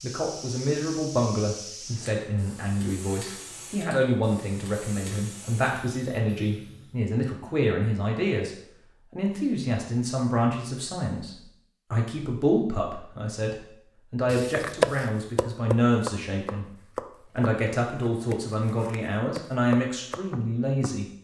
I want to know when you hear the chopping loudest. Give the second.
15 s.